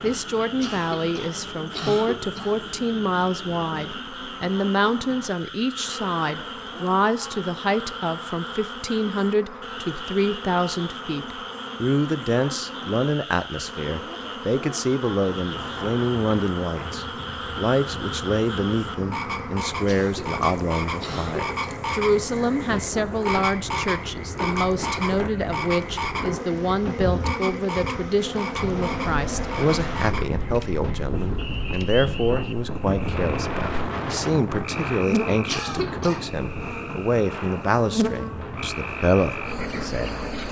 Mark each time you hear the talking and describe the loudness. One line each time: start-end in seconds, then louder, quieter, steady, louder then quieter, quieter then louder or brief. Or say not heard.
0.0-40.4 steady.